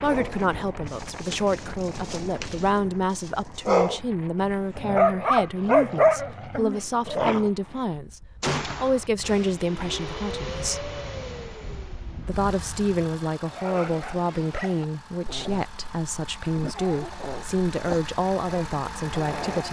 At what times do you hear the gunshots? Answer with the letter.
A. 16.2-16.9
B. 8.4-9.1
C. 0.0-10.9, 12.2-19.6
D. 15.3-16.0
B.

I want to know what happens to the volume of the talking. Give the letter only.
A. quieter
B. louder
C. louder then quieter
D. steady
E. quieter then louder
D.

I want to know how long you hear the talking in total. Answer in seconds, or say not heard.
18 s.